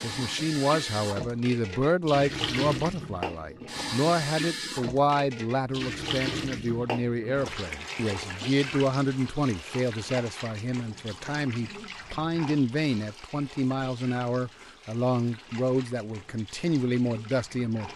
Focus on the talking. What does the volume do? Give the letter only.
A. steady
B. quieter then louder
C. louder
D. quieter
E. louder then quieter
A.